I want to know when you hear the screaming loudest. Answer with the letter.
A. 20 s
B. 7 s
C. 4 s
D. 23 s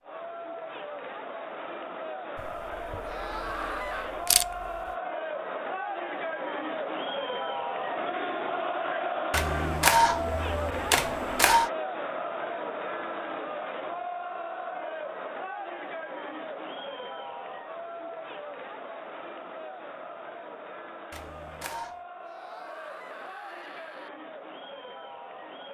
C.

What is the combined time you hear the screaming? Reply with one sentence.
The screaming can be heard for 3 seconds in total.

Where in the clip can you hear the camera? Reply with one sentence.
The camera can be heard from 2.4 to 4.8 s, from 9.3 to 11.7 s and from 21.1 to 22.0 s.